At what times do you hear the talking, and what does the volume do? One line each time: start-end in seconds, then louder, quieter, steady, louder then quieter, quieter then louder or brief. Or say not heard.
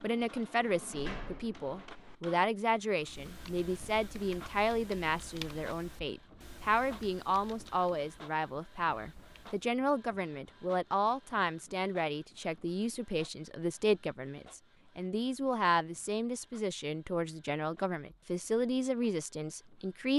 0.0-20.1 steady.